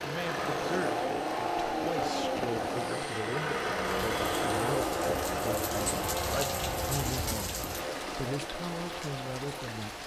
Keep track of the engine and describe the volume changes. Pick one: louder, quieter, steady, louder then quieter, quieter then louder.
quieter.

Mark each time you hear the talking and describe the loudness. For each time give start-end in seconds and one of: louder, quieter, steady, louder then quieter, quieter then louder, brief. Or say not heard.
0.0-10.0 steady.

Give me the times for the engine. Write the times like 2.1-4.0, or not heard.
0.0-10.0.